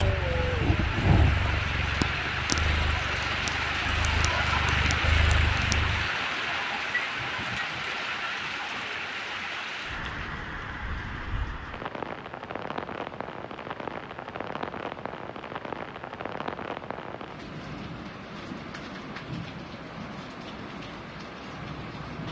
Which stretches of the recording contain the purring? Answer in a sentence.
You can hear the purring from 0.0 to 6.1 s.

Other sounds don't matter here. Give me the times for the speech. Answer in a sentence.
You can't hear the speech here.